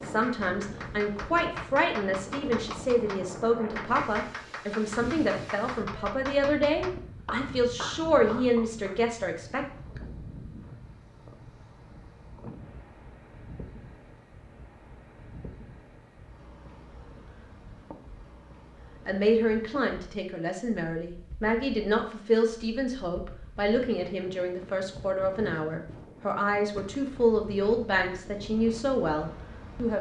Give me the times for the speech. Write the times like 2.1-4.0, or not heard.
0.0-9.7, 19.1-29.9.